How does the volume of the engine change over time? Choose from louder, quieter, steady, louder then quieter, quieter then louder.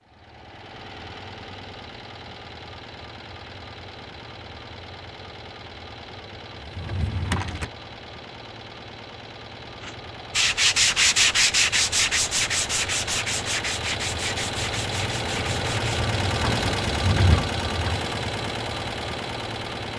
louder.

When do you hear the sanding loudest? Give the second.
11 s.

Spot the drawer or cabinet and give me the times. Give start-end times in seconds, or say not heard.
6.6-7.7, 16.9-17.5.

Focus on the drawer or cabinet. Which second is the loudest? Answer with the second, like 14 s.
17 s.